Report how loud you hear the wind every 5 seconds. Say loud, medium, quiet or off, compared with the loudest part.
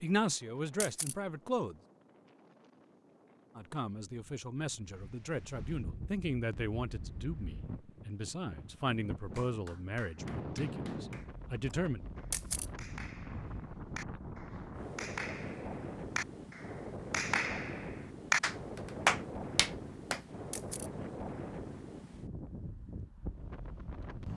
quiet, medium, loud, loud, loud.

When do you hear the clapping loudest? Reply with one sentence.
The loudest moment of the clapping is at 19 seconds.